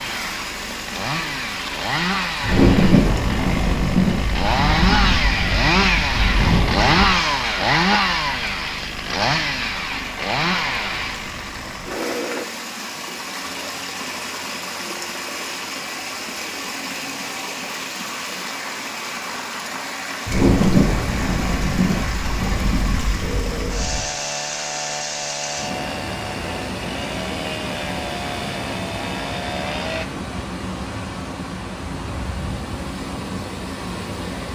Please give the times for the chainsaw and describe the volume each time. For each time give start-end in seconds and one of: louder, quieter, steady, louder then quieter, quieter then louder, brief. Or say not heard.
0.0-12.4 louder then quieter
23.2-30.1 steady.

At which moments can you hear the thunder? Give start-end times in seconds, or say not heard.
2.4-7.2, 20.2-24.1.